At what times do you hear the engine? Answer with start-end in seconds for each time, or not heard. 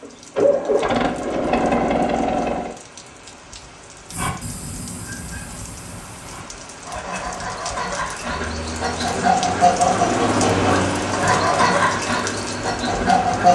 0.0-2.8, 8.2-13.5.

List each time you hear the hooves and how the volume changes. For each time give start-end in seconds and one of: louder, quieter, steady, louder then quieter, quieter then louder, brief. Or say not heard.
not heard.